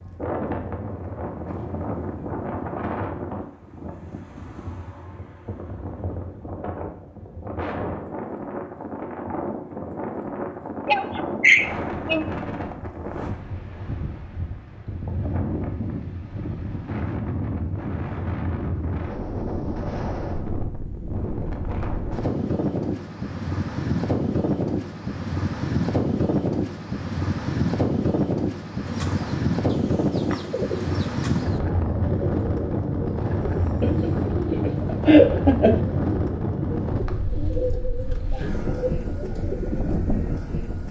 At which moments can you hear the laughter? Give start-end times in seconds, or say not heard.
10.8-12.2, 33.8-35.8.